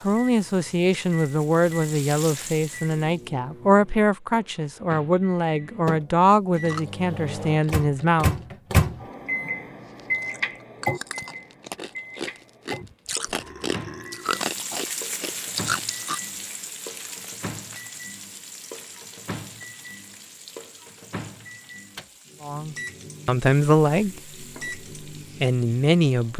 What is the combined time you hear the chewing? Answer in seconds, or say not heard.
10 s.